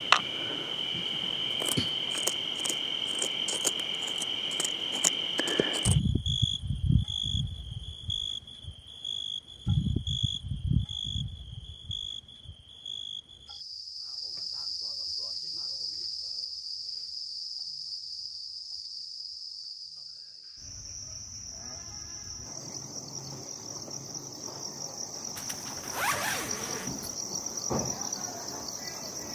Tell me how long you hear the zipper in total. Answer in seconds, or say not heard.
2 s.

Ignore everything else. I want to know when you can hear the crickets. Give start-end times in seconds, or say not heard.
0.0-29.3.